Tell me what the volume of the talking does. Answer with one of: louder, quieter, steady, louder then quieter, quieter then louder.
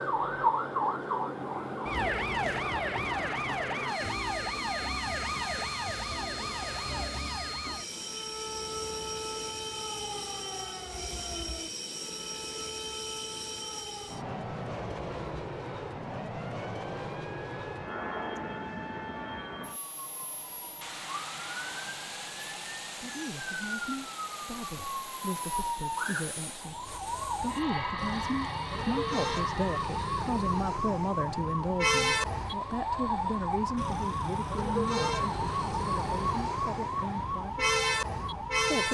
louder then quieter.